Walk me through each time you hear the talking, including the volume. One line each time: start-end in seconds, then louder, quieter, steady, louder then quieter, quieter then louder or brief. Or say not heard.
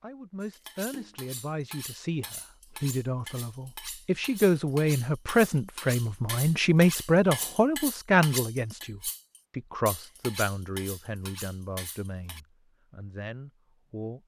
0.0-14.2 louder then quieter.